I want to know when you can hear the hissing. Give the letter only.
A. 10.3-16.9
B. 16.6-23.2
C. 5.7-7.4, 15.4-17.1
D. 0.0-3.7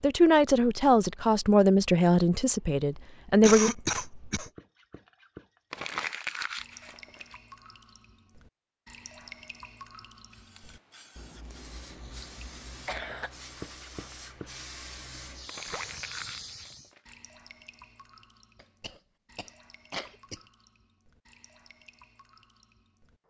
A.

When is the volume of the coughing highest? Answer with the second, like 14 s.
4 s.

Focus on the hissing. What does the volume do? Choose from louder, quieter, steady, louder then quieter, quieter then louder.
louder.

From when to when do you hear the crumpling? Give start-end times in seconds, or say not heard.
5.7-7.4, 15.4-17.1.